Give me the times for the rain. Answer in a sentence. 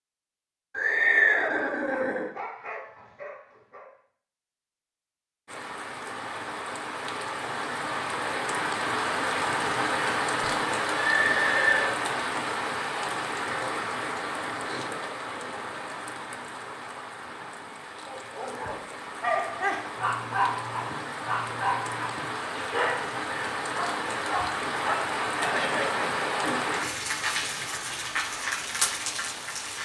You can hear the rain from 5.5 to 29.7 s.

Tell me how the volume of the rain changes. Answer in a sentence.
The loudness of the rain goes down, then up.